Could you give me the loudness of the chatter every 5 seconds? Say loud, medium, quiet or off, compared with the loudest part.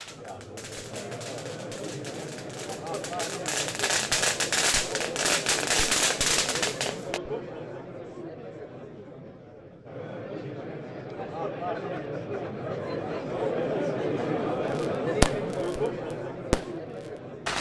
medium, medium, loud, loud.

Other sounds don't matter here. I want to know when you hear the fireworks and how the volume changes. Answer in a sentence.
The fireworks can be heard from 0.0 to 7.2 s, getting louder; briefly from 14.7 to 15.8 s; and briefly from 16.5 to 17.5 s.